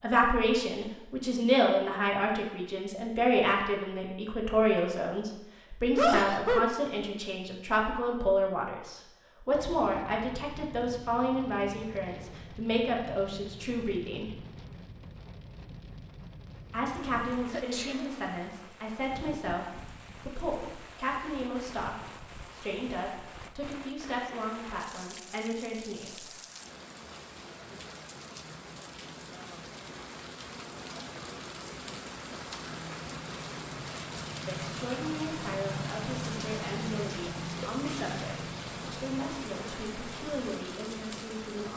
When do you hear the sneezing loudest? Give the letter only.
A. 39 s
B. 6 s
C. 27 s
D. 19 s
B.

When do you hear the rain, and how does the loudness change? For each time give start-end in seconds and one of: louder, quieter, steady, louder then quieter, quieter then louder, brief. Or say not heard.
9.5-41.7 louder.